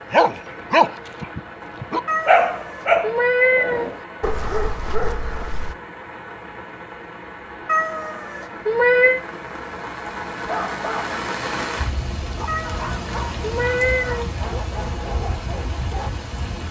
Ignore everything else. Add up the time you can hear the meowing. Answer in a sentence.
The meowing can be heard for 5 seconds in total.